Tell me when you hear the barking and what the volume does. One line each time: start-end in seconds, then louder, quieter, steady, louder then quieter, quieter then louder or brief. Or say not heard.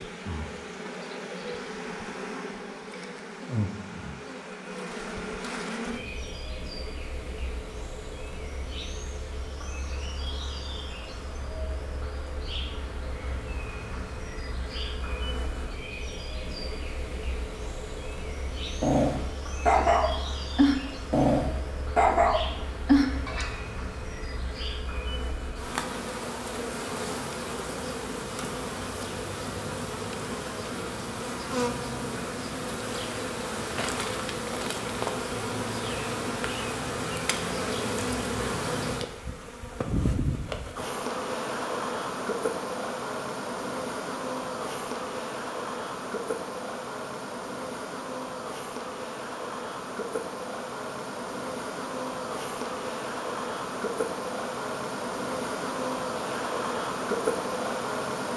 18.8-23.6 steady.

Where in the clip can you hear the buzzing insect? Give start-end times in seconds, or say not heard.
0.0-58.3.